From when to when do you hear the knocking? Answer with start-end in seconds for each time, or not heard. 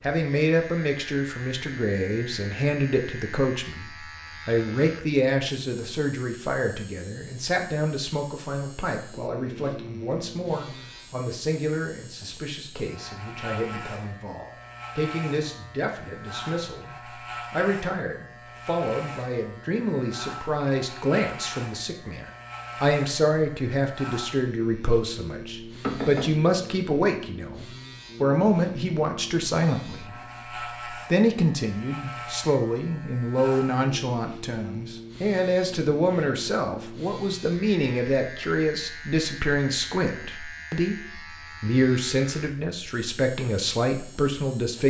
25.8-26.4.